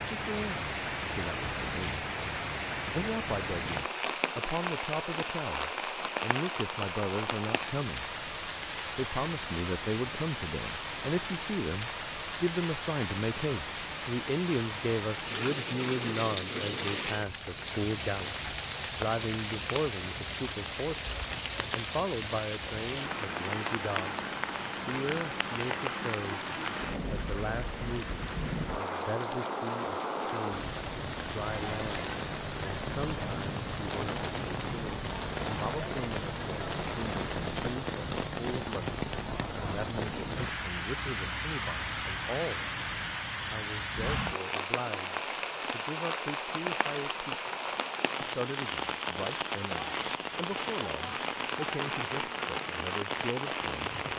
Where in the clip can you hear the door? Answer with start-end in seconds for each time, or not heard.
not heard.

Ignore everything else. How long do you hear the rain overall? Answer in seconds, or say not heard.
54 s.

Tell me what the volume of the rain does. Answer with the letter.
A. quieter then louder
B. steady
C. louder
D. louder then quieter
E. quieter
B.